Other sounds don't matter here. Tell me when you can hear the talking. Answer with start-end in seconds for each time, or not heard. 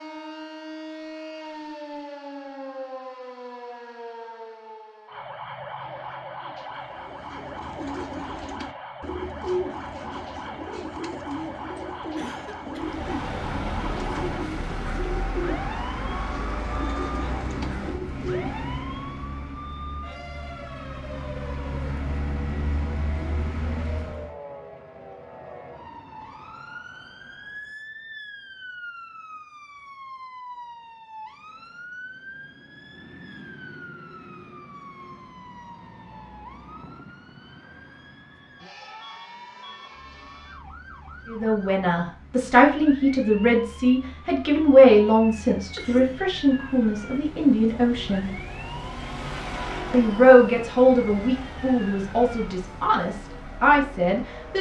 41.2-48.3, 49.9-54.5.